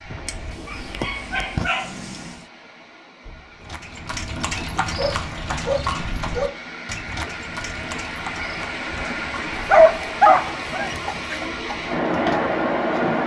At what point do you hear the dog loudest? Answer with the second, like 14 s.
10 s.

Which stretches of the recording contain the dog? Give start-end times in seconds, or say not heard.
0.2-2.4, 5.0-6.6, 9.6-11.4.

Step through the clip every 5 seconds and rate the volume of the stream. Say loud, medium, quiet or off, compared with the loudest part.
quiet, medium, loud.